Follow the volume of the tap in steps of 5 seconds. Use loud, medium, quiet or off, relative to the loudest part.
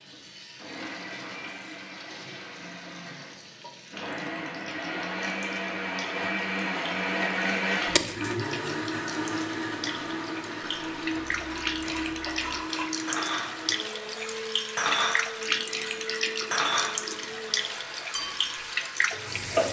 quiet, medium, loud, loud.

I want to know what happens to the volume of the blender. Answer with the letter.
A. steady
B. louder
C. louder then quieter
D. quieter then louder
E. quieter
C.